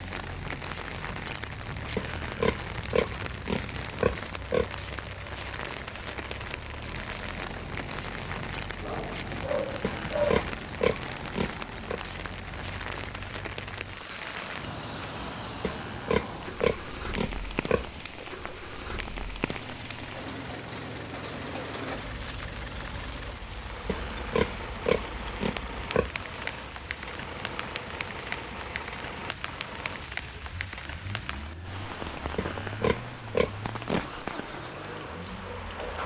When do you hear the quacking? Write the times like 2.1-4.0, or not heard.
not heard.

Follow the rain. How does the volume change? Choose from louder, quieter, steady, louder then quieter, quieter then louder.
steady.